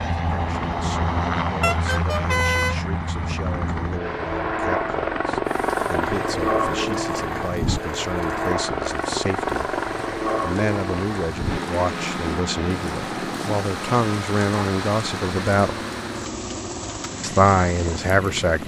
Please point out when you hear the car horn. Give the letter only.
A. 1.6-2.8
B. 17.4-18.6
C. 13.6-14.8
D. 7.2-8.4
A.